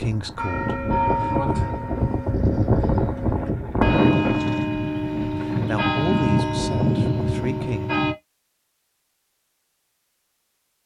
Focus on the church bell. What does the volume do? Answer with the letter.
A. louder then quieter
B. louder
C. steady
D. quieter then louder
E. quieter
D.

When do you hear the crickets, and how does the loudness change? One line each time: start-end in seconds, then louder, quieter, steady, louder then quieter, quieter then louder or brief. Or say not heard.
not heard.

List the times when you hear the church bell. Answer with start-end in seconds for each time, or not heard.
0.3-8.2.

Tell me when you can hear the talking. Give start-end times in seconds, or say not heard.
0.0-1.5, 5.4-7.9.